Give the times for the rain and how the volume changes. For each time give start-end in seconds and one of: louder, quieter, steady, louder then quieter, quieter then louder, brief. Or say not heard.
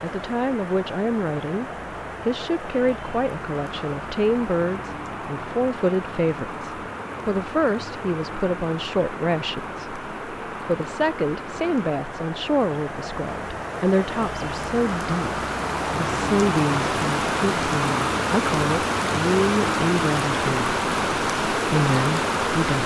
0.0-22.8 louder.